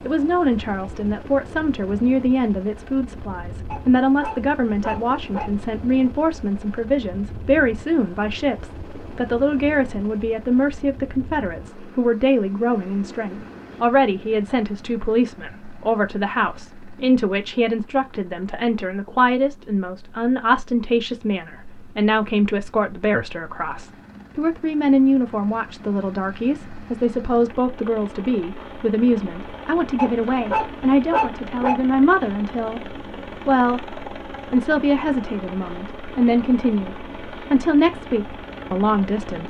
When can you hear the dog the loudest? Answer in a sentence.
The loudest moment of the dog is at 31 seconds.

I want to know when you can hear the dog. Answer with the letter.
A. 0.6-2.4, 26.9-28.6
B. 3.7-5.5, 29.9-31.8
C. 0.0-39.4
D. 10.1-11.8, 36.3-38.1
B.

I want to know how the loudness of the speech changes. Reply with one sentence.
The volume of the speech stays about the same.